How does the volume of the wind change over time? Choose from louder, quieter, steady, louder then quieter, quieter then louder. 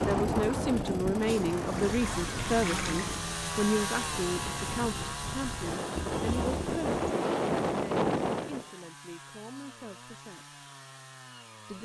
quieter then louder.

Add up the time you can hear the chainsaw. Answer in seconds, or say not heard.
12 s.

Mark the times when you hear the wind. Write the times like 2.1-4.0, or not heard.
0.0-8.7.